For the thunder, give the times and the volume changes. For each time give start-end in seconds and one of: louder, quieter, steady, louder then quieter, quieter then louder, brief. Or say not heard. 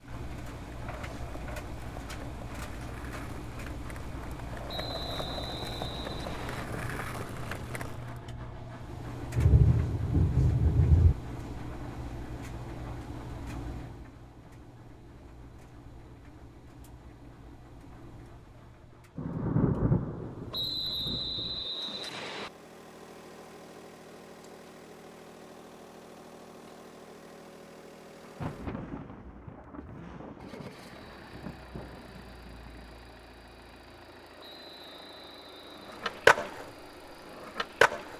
9.3-11.2 brief
19.1-21.6 brief
28.2-33.0 quieter.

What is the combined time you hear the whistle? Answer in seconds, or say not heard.
6 s.